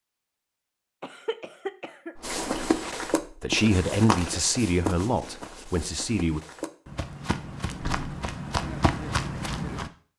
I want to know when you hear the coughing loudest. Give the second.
2 s.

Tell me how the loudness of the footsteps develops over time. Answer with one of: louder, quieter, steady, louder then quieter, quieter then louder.
quieter then louder.